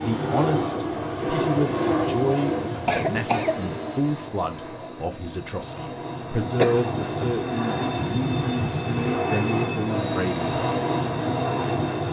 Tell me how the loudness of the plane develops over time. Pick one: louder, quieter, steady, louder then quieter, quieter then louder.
quieter then louder.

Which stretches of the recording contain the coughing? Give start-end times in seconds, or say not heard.
2.9-3.6, 6.5-7.4.